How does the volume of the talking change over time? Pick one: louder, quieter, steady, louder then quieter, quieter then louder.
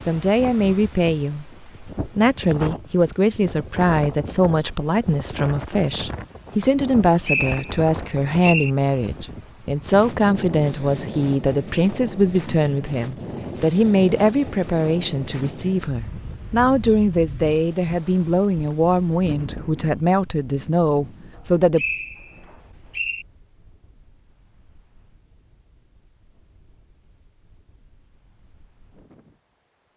steady.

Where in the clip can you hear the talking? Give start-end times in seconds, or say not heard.
0.0-21.9.